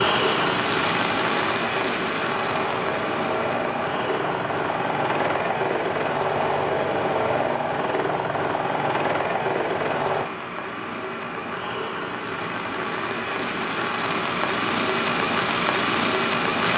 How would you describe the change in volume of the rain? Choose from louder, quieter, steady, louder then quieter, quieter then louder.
quieter then louder.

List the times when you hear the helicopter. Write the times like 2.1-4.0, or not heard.
0.1-10.2.